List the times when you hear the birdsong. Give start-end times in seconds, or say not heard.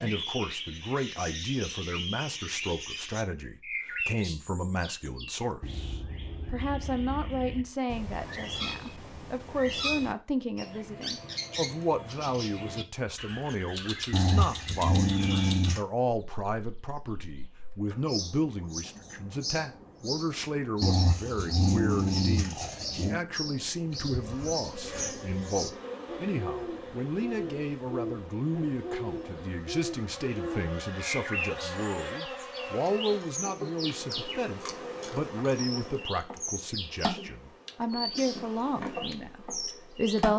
0.0-40.2.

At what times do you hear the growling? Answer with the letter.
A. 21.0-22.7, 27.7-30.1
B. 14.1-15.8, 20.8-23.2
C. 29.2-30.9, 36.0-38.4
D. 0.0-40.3
B.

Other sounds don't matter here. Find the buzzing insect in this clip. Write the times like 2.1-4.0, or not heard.
23.8-40.3.